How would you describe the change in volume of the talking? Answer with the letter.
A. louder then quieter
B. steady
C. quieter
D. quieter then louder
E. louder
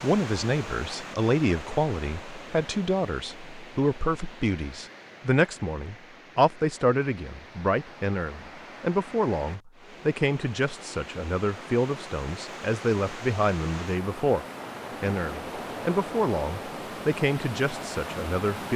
B.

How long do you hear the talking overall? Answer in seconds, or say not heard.
19 s.